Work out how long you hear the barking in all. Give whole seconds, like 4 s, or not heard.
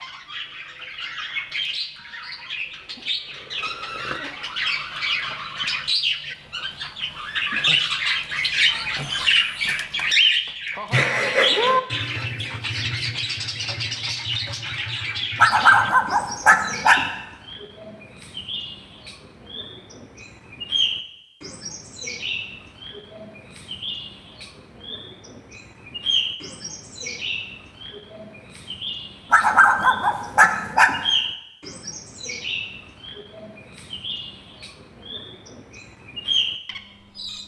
3 s.